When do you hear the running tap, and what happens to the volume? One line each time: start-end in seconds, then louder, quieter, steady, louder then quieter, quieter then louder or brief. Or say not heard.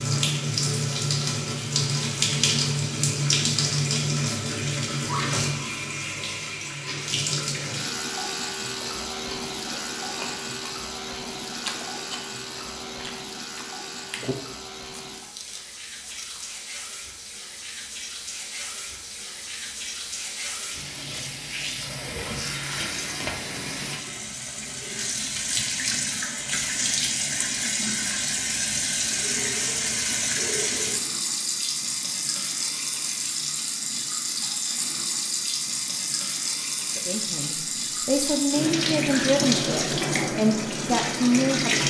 0.0-41.8 quieter then louder.